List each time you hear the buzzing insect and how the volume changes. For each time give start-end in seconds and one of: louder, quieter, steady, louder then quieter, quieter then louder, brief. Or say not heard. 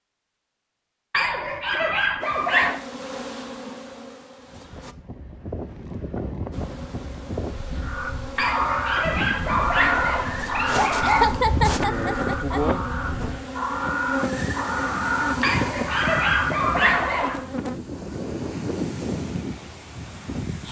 2.2-5.0 brief
6.5-17.8 louder then quieter.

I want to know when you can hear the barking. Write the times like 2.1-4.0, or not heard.
1.1-2.8, 8.3-11.2, 15.4-17.4.